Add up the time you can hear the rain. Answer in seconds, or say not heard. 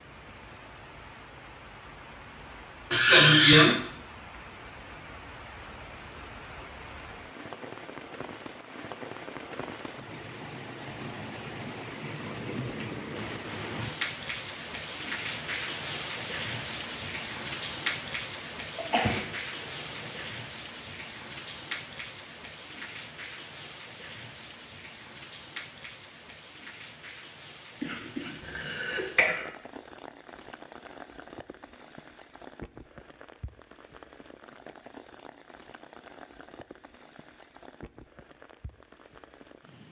40 s.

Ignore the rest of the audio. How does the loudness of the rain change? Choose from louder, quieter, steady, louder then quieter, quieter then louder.
louder then quieter.